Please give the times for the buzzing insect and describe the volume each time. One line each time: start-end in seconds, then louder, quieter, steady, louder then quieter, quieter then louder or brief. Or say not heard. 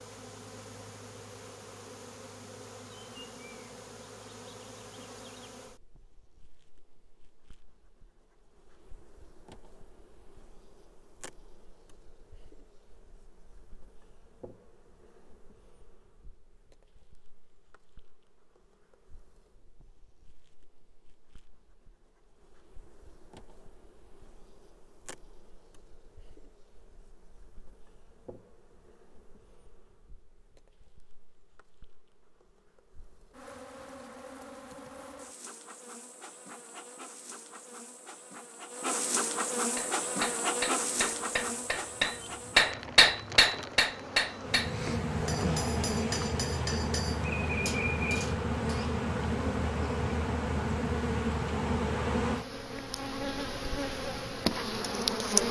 0.0-55.4 quieter then louder.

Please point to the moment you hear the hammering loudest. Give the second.
43 s.